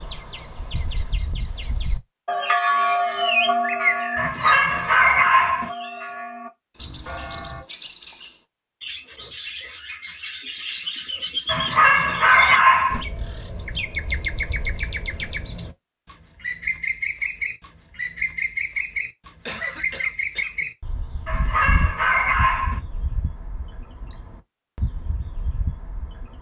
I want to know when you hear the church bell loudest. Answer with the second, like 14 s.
3 s.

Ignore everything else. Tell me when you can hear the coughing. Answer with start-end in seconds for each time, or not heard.
19.4-20.6.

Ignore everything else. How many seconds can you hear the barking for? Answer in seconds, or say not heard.
5 s.